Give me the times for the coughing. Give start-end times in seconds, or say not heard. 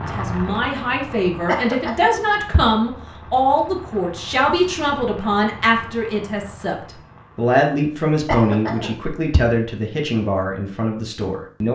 1.4-2.6, 8.2-9.4.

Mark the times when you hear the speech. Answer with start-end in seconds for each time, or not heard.
0.0-11.7.